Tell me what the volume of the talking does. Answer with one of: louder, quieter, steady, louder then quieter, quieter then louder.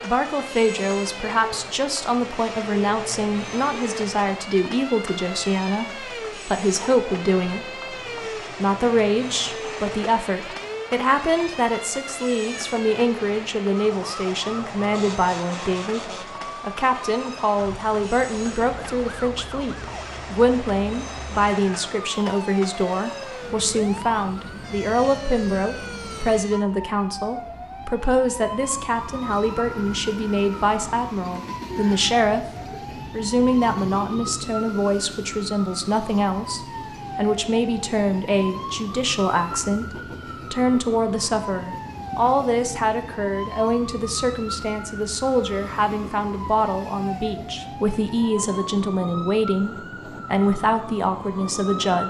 steady.